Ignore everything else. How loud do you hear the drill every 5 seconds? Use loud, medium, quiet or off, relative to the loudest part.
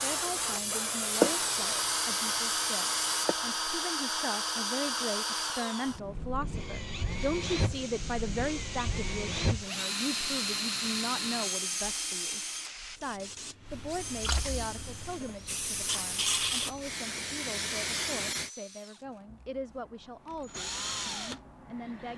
loud, loud, loud, quiet, medium.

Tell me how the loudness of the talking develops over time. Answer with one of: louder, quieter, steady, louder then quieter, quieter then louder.
louder then quieter.